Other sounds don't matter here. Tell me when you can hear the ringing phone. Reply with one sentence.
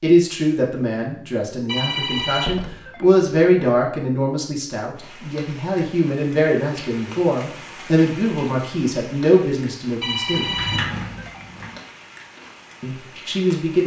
You can hear the ringing phone from 1.6 to 3.2 s and from 10.0 to 11.7 s.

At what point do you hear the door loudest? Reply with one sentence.
The volume of the door peaks at 11 seconds.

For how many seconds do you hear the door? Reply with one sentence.
You can hear the door for 2 seconds altogether.